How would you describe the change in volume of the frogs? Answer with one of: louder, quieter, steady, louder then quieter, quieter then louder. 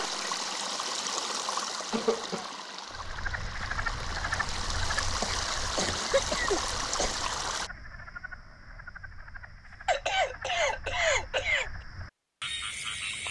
quieter then louder.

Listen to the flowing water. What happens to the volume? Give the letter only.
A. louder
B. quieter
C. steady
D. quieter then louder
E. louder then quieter
D.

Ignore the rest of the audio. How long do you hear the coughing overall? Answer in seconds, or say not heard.
4 s.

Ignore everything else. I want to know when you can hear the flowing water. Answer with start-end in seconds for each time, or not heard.
0.0-7.7.